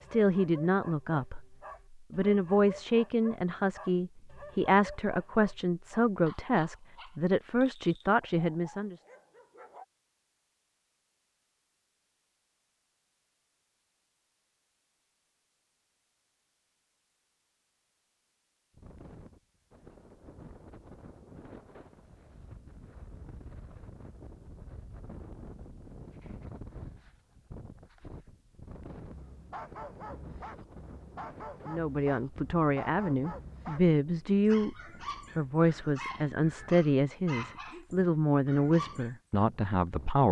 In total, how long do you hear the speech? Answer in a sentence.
You can hear the speech for 17 seconds altogether.